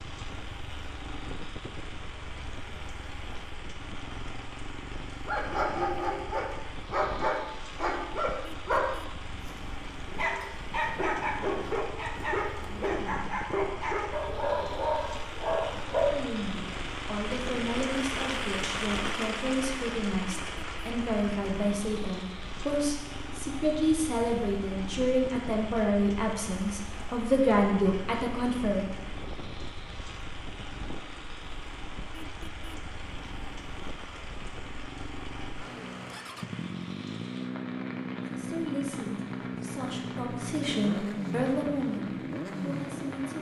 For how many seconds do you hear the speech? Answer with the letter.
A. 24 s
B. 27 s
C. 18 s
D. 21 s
C.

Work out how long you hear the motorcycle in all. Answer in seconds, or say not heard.
43 s.